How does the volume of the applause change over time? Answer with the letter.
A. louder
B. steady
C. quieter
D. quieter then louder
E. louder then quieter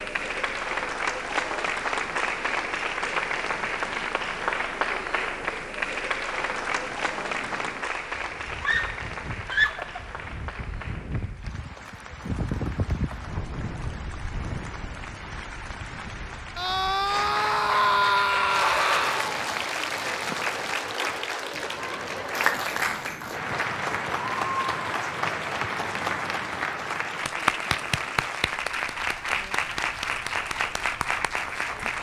D.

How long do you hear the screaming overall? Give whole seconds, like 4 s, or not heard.
4 s.